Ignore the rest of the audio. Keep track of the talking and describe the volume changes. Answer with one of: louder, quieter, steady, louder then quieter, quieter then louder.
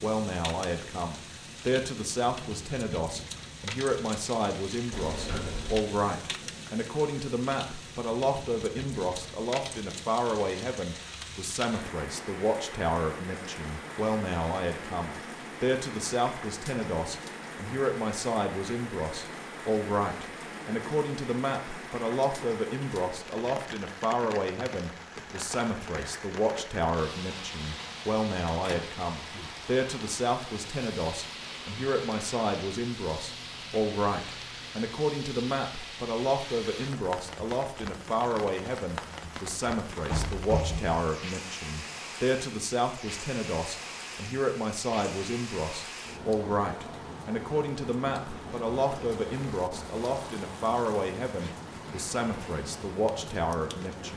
steady.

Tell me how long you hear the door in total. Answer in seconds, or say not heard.
3 s.